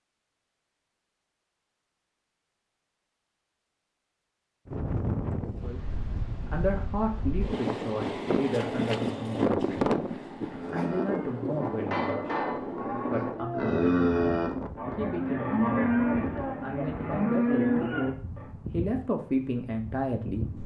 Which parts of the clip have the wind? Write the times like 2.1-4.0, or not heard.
4.7-20.6.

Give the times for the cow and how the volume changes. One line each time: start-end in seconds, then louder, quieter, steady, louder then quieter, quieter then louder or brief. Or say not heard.
10.4-18.5 louder.